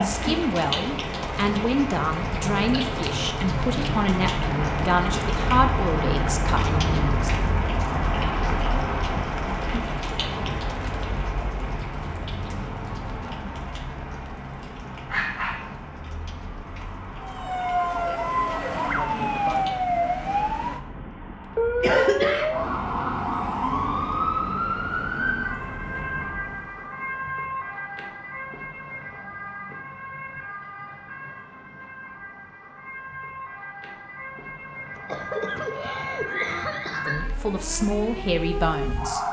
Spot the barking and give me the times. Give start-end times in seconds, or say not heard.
15.1-15.8.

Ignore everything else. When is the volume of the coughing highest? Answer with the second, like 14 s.
22 s.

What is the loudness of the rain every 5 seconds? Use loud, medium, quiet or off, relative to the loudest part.
loud, loud, medium, quiet, off, off, off, off.